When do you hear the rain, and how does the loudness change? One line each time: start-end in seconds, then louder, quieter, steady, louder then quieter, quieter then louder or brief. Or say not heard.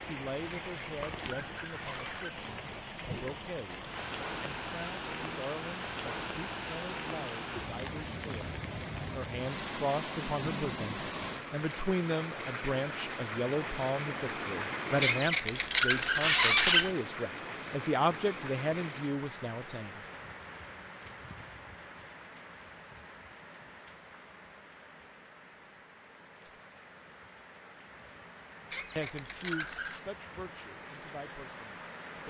0.0-32.2 quieter.